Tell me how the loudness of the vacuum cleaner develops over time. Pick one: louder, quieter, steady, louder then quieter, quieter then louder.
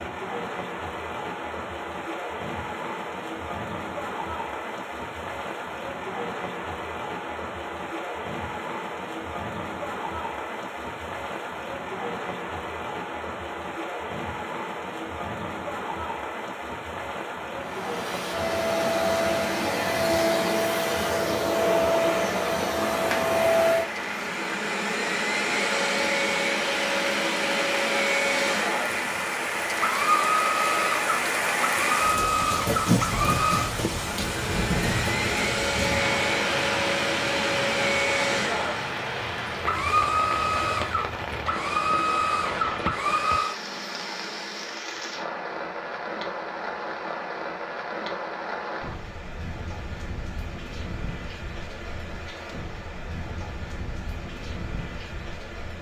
steady.